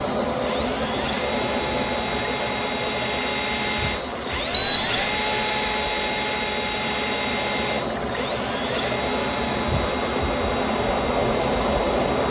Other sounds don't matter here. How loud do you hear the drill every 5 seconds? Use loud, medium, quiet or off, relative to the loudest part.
loud, loud, medium.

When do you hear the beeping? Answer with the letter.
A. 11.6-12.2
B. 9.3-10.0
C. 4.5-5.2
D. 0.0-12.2
C.